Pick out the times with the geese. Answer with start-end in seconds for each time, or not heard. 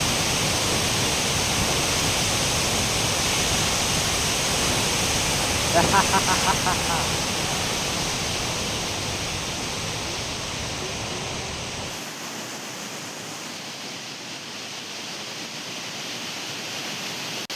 not heard.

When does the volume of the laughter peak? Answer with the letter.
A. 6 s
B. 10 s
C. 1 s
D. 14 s
A.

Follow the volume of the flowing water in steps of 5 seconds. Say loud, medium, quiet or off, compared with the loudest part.
loud, loud, medium, medium.